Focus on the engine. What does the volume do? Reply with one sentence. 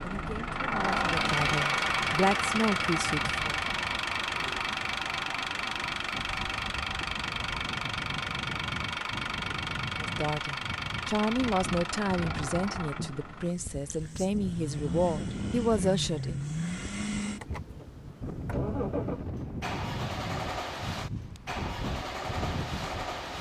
The loudness of the engine goes down.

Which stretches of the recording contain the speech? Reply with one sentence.
The speech can be heard from 0.0 to 3.5 s and from 10.0 to 16.4 s.